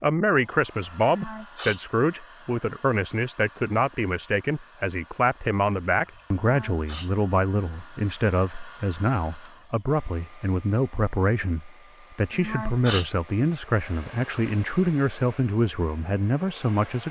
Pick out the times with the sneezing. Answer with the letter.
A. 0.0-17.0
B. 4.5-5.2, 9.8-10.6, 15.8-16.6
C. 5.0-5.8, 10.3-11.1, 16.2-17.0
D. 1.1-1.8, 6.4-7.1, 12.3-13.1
D.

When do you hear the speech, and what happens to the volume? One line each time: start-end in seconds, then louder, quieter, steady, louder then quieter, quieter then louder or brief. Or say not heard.
0.0-17.0 steady.